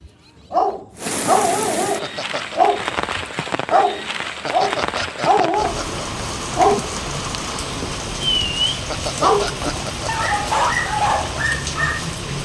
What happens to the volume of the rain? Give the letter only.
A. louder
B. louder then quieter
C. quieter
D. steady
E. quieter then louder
D.